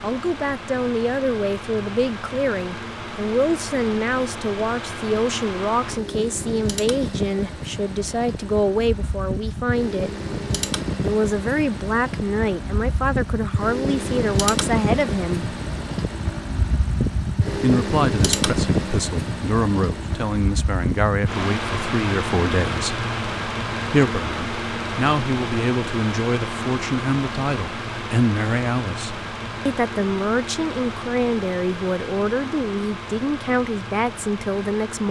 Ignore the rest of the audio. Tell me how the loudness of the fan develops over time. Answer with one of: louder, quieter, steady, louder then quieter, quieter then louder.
louder then quieter.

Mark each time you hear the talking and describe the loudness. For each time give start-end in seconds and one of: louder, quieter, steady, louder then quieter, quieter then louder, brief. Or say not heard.
0.0-10.1 steady
11.0-15.5 steady
17.6-23.1 steady
23.9-35.0 steady.